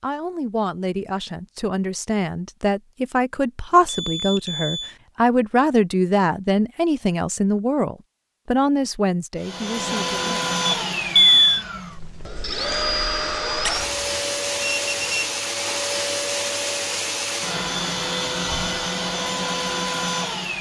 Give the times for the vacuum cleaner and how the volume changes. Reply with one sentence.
The vacuum cleaner can be heard from 9.3 to 20.5 s, at a steady volume.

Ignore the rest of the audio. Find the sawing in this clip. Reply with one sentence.
The sawing can't be heard in this clip.